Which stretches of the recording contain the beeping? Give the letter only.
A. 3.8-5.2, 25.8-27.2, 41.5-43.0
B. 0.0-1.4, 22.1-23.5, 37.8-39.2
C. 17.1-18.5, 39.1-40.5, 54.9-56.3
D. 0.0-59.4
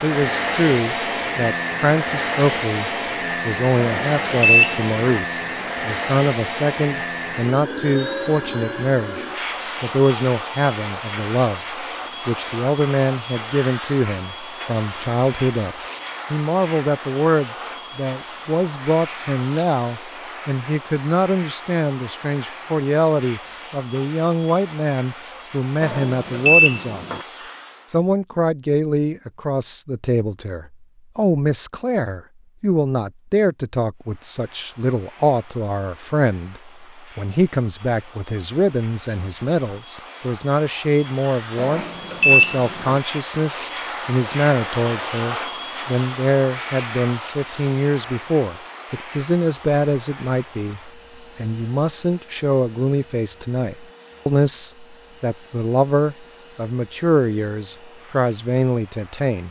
A.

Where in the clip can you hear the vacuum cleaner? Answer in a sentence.
The vacuum cleaner can be heard from 0.0 to 28.1 s and from 34.0 to 59.4 s.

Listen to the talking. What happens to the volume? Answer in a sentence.
The volume of the talking stays about the same.